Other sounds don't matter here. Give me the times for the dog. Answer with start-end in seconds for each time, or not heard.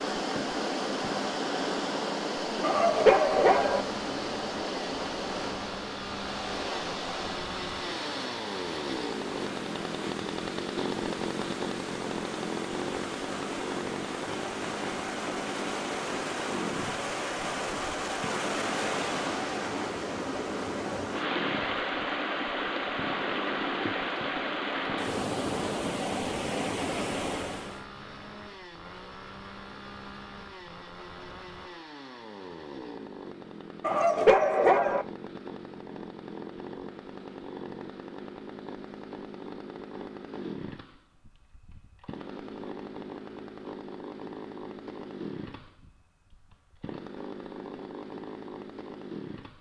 2.6-3.9, 33.8-35.0.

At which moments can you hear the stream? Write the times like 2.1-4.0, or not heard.
0.0-27.9.